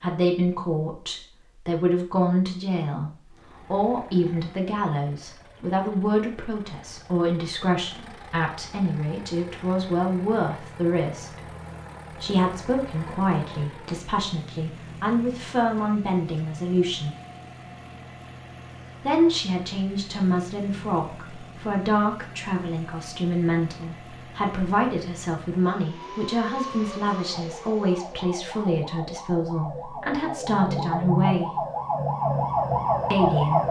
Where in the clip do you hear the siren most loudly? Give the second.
33 s.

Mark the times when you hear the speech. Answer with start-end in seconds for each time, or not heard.
0.0-11.5, 12.1-17.1, 19.0-31.6, 33.1-33.6.